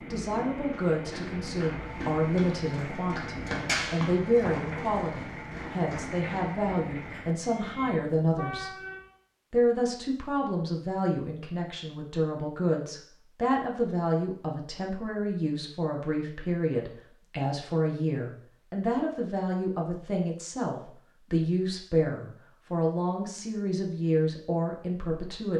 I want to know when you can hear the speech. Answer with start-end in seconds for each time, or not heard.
0.0-8.8, 9.5-25.5.